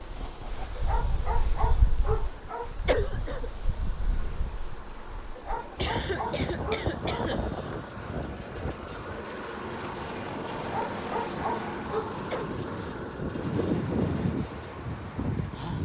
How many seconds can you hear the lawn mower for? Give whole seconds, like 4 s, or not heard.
16 s.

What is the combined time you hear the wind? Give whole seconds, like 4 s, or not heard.
16 s.